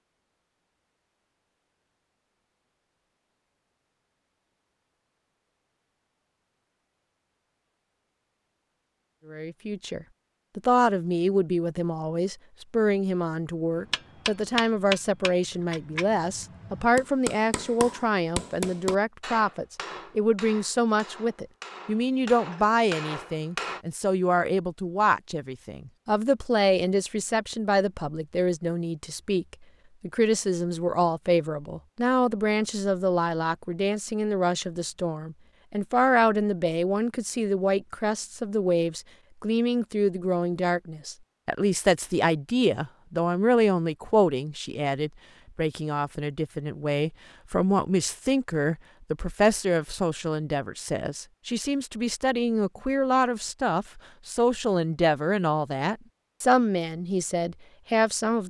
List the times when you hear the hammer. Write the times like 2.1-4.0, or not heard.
13.8-23.8.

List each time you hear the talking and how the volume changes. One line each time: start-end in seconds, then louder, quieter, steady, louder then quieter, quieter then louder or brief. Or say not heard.
9.2-58.4 steady.